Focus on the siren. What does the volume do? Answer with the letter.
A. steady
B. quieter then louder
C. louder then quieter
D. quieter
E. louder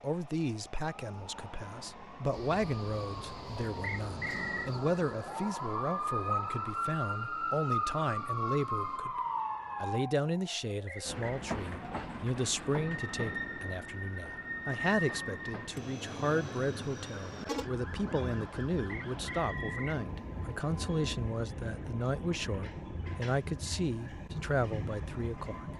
C.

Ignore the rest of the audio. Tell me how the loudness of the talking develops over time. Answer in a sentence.
The volume of the talking stays about the same.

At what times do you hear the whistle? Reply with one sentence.
The whistle can be heard from 3.8 to 4.7 s, from 10.8 to 11.4 s and from 19.1 to 20.0 s.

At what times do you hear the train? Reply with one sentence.
The train can be heard from 2.3 to 9.0 s and from 11.1 to 25.7 s.